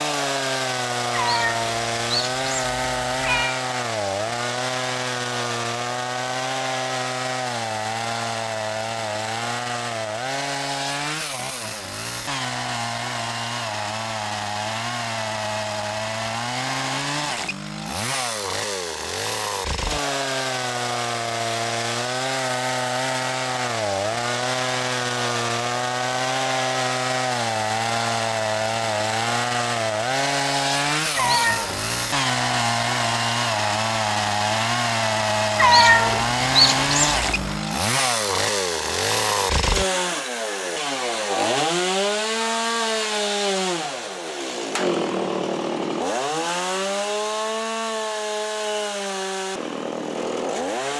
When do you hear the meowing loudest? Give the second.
36 s.